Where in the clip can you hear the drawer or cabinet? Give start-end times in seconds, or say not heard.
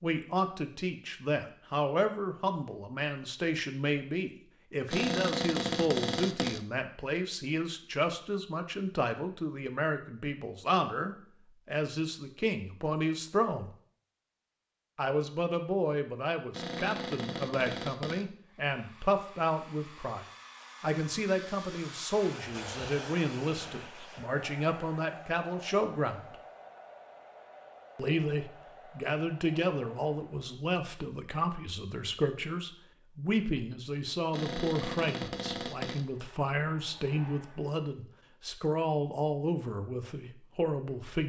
4.9-6.6, 16.5-18.2, 34.3-36.0.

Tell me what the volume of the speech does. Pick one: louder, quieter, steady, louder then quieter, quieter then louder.
steady.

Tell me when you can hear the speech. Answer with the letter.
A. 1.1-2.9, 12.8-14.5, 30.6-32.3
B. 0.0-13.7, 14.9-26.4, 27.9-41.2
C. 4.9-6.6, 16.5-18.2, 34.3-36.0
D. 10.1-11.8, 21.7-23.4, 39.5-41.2
B.